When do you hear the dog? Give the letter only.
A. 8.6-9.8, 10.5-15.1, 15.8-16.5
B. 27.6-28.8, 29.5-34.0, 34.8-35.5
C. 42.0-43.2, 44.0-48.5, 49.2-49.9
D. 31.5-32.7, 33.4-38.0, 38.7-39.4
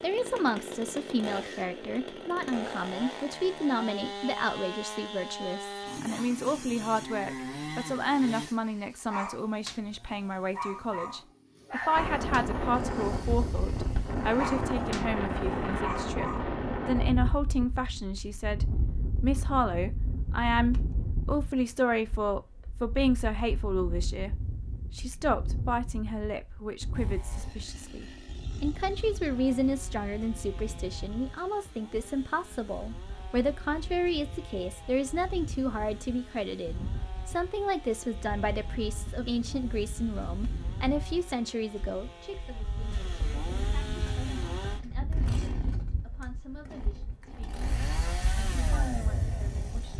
A.